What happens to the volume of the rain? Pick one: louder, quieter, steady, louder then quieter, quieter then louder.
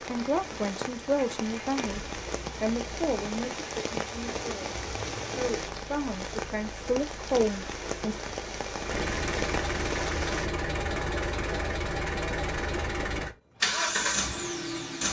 steady.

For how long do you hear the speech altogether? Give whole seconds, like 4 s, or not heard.
8 s.